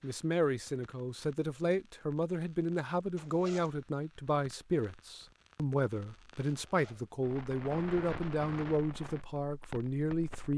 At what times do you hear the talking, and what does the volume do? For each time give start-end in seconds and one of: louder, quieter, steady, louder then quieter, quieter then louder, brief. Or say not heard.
0.0-10.5 steady.